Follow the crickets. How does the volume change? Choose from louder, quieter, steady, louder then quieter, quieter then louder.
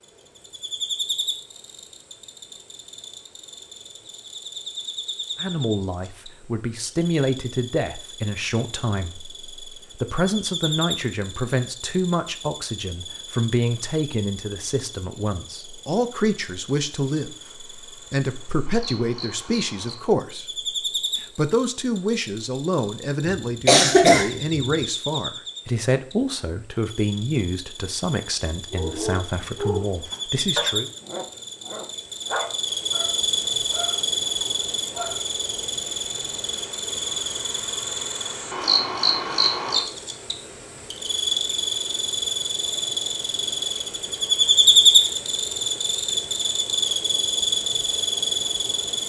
louder.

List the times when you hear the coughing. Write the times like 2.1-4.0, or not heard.
23.2-24.6.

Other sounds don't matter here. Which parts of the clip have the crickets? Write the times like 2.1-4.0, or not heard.
0.0-49.0.